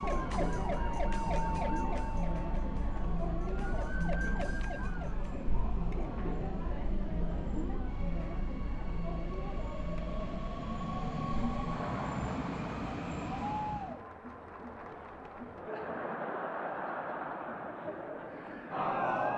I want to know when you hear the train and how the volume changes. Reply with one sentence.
You can hear the train from 0.0 to 14.0 s, getting louder.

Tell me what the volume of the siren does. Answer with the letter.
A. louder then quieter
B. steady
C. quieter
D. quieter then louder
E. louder
D.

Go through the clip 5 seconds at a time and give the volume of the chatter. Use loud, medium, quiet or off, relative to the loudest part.
loud, loud, medium, loud.